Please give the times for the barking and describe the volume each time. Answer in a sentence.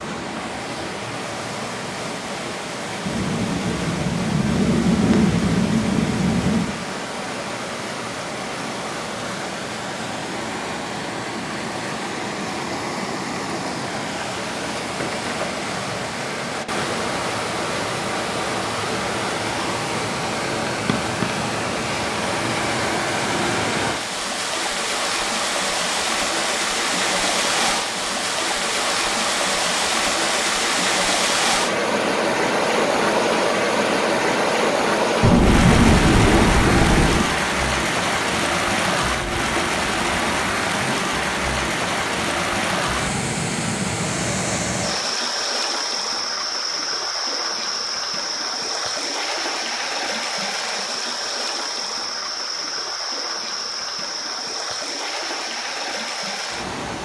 You can't hear the barking here.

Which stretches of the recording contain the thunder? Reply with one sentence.
The thunder can be heard from 3.0 to 6.8 s and from 35.2 to 37.2 s.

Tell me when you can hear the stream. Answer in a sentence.
You can hear the stream from 0.0 to 57.0 s.